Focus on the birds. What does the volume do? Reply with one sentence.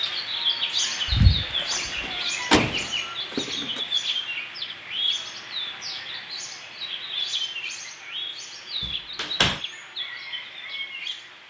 The volume of the birds goes down.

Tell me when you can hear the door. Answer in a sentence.
You can hear the door from 2.0 to 3.8 s and from 8.8 to 9.6 s.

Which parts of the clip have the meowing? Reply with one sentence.
You can hear the meowing from 1.1 to 2.3 s.